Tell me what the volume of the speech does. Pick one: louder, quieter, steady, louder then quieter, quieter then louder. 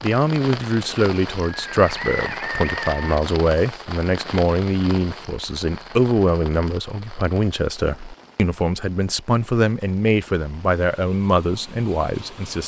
steady.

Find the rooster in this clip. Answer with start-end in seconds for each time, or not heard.
1.4-3.2.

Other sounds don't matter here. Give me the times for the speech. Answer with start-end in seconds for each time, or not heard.
0.0-12.6.